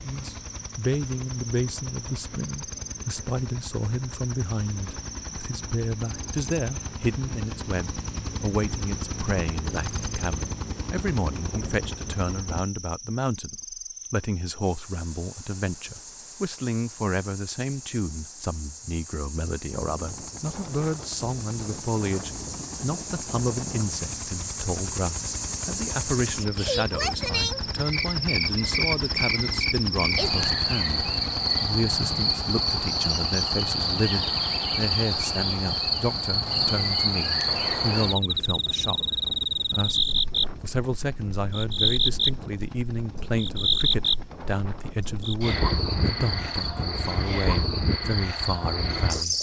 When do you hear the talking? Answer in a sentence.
You can hear the talking from 0.0 to 40.0 s and from 40.6 to 49.3 s.